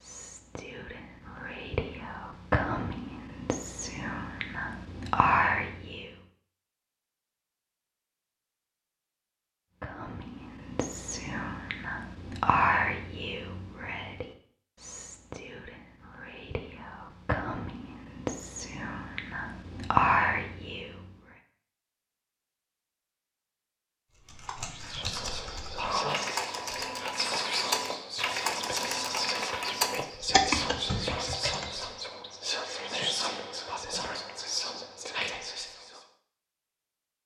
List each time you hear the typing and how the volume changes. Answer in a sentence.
You can hear the typing from 24.1 to 31.7 s, getting louder.